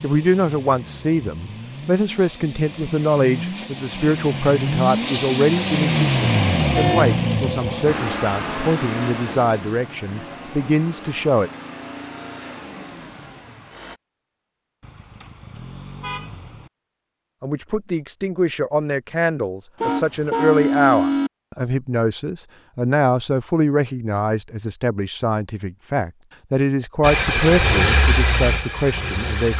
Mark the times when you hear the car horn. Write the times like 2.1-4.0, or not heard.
6.7-7.2, 14.8-16.7, 19.8-21.3.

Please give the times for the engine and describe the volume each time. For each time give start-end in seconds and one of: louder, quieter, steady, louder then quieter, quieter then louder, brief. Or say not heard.
0.0-14.0 louder then quieter
27.0-29.5 brief.